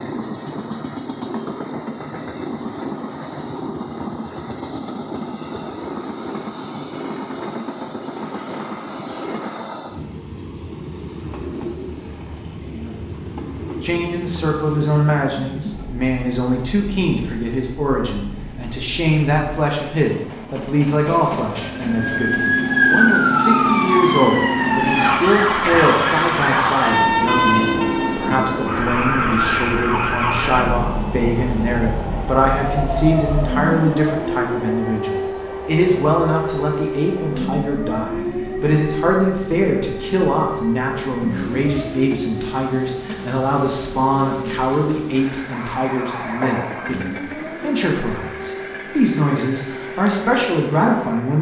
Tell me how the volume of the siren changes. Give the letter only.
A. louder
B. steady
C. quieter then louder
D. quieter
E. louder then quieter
D.